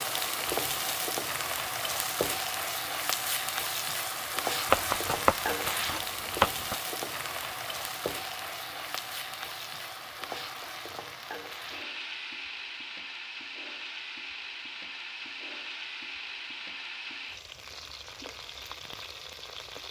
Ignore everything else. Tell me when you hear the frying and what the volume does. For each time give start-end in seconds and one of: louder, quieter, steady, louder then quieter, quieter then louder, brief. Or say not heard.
0.0-19.8 quieter.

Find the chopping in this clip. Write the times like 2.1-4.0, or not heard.
4.7-6.8.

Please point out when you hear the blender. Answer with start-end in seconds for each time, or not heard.
not heard.